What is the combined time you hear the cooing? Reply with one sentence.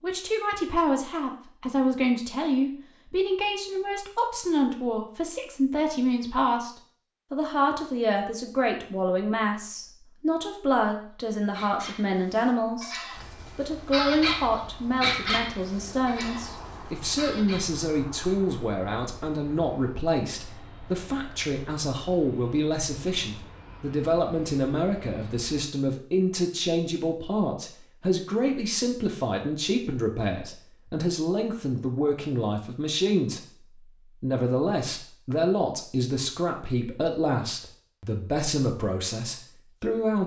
The cooing can't be heard in this clip.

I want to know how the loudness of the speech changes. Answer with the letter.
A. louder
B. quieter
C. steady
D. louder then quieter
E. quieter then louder
C.